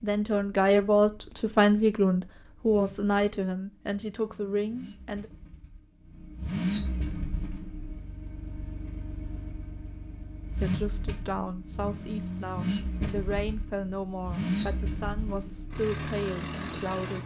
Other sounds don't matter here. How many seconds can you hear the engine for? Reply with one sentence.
You can hear the engine for 17 seconds altogether.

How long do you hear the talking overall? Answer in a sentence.
You can hear the talking for 12 seconds altogether.